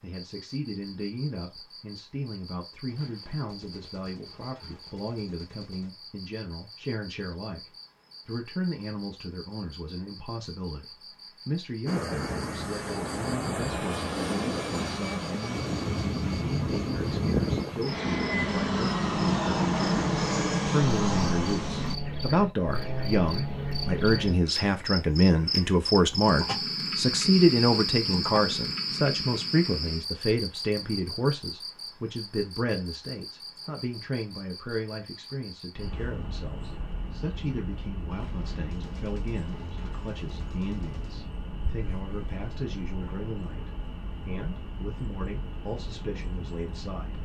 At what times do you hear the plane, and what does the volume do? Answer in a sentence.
The plane can be heard from 11.8 to 21.9 s, getting louder.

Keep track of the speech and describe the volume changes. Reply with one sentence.
The loudness of the speech goes up, then down.